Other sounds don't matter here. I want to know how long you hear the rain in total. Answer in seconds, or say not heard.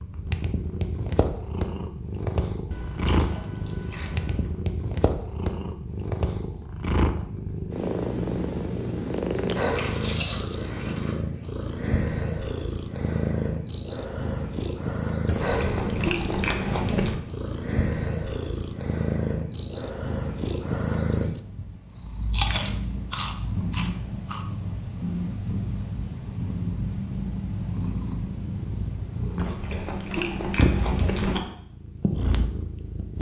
not heard.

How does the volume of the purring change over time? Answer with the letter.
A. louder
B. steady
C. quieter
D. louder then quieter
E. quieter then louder
B.